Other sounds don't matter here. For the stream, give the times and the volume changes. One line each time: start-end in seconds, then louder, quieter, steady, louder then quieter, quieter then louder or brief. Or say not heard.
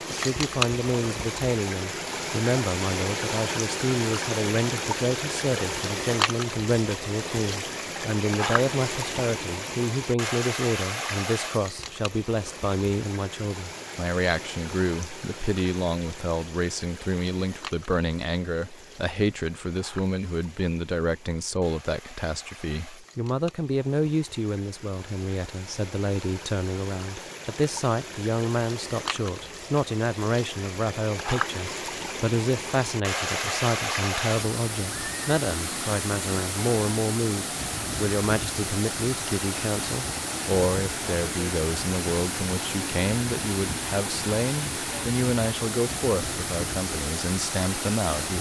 0.0-48.3 quieter then louder.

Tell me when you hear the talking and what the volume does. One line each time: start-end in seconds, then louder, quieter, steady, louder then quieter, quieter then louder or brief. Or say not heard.
0.1-48.3 steady.